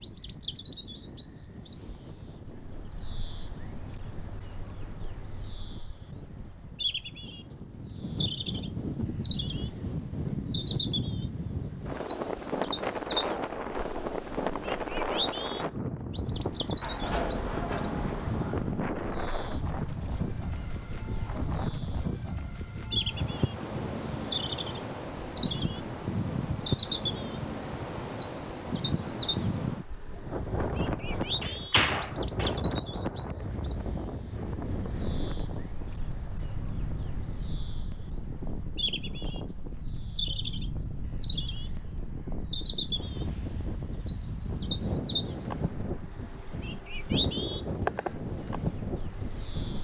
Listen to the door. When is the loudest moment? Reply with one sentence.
The volume of the door peaks at 32 seconds.